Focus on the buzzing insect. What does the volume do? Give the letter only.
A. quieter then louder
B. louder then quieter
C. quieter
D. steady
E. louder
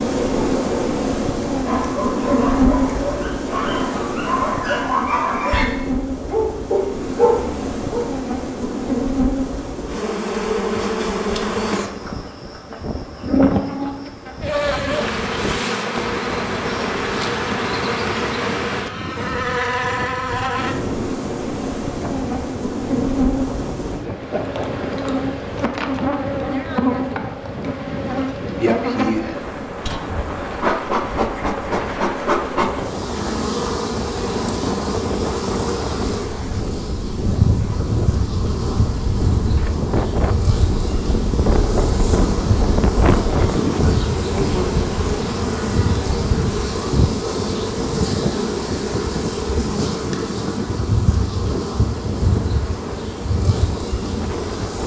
D.